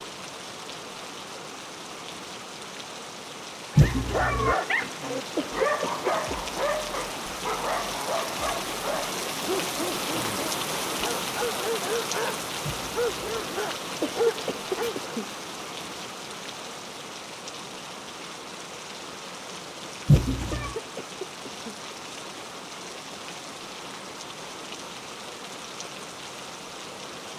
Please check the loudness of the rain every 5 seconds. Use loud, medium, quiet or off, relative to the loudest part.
medium, loud, loud, medium, medium, medium.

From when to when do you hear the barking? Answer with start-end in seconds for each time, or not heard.
3.7-15.1.